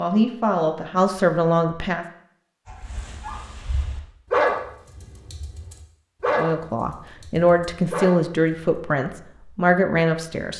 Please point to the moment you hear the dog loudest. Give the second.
4 s.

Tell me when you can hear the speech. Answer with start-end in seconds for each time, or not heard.
0.0-2.0, 6.3-10.5.